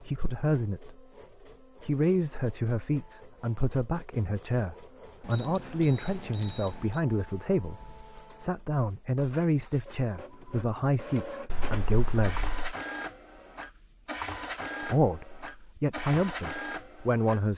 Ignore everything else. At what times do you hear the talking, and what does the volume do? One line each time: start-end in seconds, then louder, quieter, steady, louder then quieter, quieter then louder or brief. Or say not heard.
0.0-1.0 brief
1.8-12.5 steady
14.8-17.5 brief.